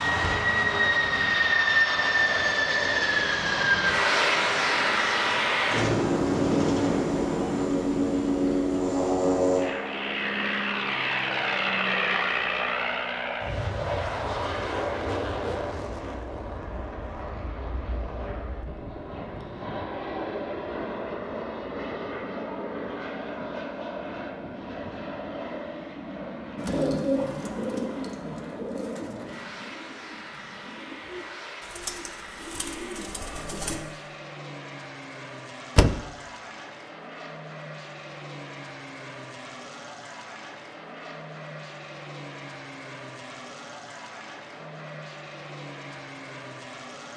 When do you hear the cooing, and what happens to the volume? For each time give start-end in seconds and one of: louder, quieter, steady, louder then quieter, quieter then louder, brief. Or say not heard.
26.6-33.8 quieter then louder.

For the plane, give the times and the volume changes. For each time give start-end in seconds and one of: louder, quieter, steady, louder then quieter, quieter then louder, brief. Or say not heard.
0.0-47.1 quieter.